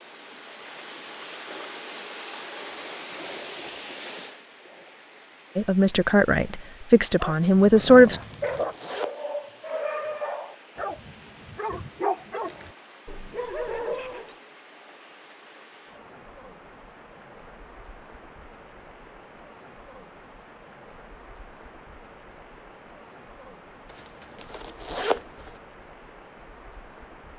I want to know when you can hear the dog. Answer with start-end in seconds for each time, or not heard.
7.2-14.3.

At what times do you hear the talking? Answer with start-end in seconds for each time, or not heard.
5.5-8.2.